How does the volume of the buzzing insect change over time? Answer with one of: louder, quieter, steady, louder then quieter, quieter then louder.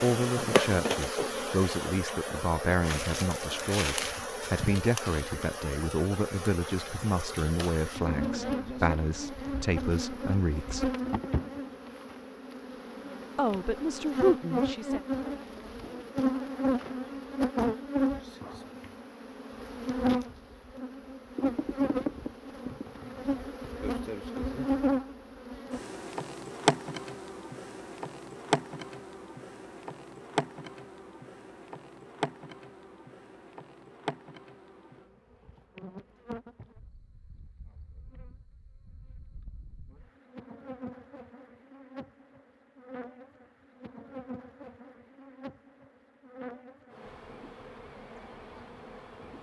quieter.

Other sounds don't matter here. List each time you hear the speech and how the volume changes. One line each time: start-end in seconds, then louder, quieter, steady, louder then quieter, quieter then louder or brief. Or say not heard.
0.0-10.9 steady
13.3-15.0 brief.